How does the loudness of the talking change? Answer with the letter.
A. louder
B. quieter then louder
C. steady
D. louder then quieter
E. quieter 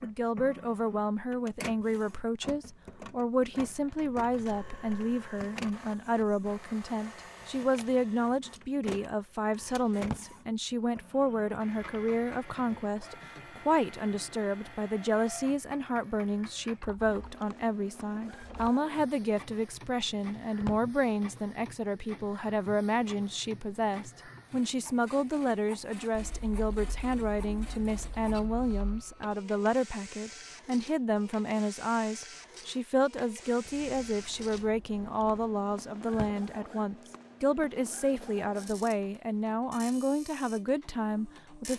C.